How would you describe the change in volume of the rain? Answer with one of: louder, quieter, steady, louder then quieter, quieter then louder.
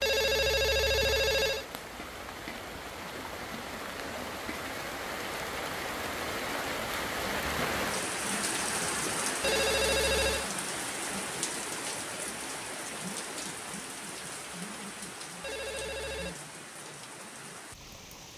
louder then quieter.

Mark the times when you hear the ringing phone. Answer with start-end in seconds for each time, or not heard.
0.0-1.6, 9.4-10.5, 15.4-16.4.